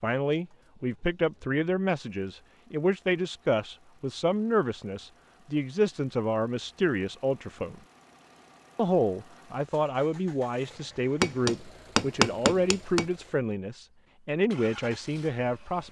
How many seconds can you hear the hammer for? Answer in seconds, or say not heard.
2 s.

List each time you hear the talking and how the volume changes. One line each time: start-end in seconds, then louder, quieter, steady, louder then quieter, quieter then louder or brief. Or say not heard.
0.0-7.8 steady
8.8-15.8 steady.